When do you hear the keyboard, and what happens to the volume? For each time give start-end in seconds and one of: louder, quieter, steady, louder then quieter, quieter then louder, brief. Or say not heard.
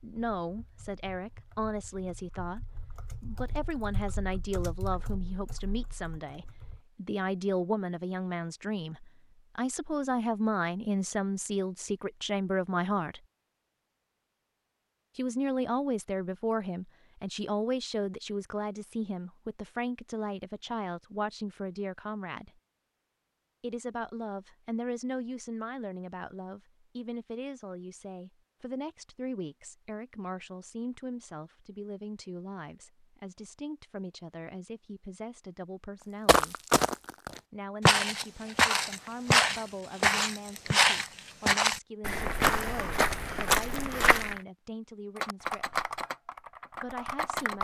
0.0-6.8 louder then quieter
45.1-47.5 brief.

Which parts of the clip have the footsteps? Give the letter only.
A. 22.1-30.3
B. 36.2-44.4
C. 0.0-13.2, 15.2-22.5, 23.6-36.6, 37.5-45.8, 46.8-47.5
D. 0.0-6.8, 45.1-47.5
B.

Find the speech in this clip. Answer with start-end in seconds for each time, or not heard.
0.0-13.2, 15.2-22.5, 23.6-36.6, 37.5-45.8, 46.8-47.5.